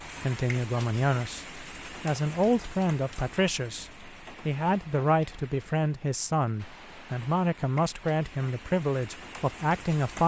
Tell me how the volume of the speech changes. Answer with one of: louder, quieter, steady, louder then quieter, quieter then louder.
steady.